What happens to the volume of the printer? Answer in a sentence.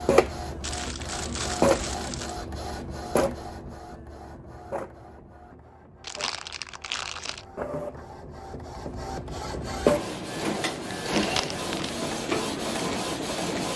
The volume of the printer goes down, then up.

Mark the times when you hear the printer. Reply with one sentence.
You can hear the printer from 0.0 to 13.7 s.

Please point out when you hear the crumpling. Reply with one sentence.
You can hear the crumpling from 0.6 to 2.4 s, from 6.0 to 7.5 s and from 11.1 to 11.9 s.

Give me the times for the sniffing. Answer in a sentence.
You can't hear the sniffing here.